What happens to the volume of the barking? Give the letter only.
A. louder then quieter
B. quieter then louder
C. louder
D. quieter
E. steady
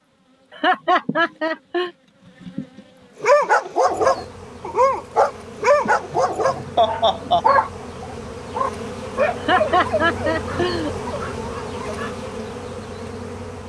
D.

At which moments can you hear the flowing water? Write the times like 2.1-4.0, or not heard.
not heard.